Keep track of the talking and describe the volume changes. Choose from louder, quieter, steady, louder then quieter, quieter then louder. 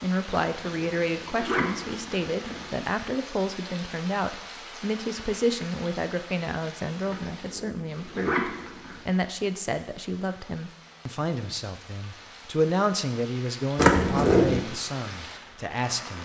steady.